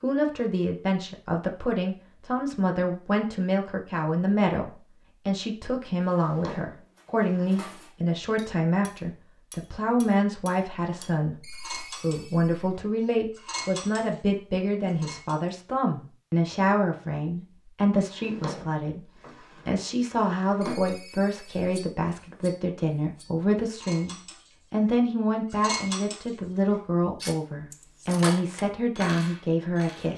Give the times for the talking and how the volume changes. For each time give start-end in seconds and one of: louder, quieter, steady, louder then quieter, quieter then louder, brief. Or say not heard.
0.0-19.1 steady
19.6-30.1 steady.